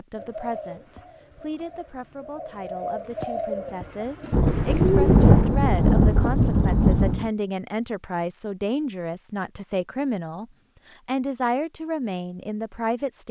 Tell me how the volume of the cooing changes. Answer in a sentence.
The volume of the cooing goes down, then up.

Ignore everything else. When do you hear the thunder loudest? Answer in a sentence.
The volume of the thunder peaks at 5 seconds.